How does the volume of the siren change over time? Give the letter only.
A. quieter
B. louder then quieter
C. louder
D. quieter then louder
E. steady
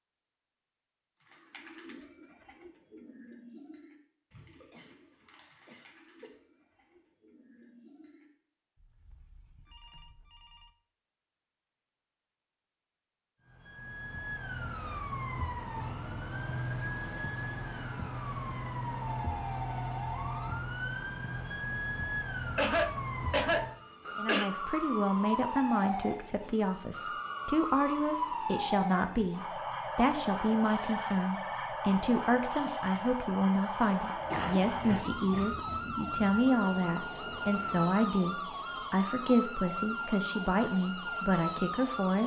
E.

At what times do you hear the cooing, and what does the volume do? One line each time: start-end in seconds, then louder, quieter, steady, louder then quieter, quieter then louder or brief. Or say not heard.
1.2-8.3 quieter.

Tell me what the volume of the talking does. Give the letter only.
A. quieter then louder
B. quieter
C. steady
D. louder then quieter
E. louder
C.